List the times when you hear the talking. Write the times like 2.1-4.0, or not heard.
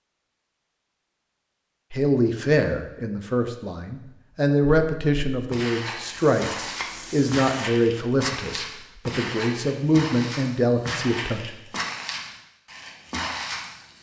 1.9-11.5.